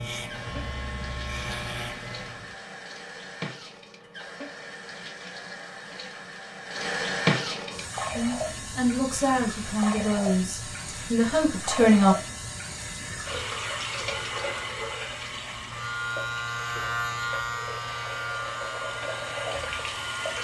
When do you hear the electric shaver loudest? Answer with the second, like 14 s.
17 s.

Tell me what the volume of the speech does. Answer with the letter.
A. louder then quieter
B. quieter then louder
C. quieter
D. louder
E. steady
B.